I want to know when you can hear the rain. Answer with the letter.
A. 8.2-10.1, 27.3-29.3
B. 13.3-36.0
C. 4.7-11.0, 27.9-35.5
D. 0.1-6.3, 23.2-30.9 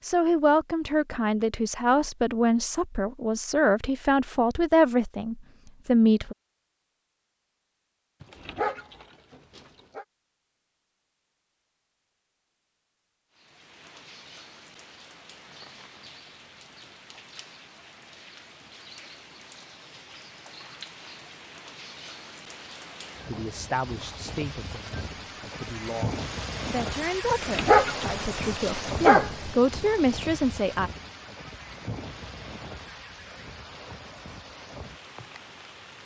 B.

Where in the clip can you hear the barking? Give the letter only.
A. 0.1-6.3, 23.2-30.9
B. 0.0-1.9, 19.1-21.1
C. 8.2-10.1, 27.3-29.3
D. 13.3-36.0
C.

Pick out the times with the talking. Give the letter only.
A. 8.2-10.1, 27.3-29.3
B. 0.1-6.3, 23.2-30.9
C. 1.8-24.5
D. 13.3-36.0
B.